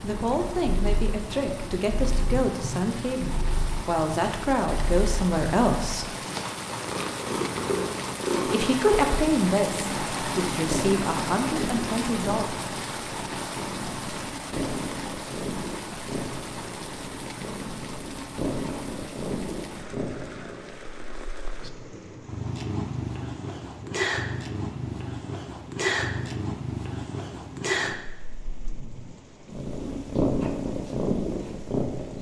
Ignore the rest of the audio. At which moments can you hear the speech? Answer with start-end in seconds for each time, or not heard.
0.0-6.2, 8.4-12.6.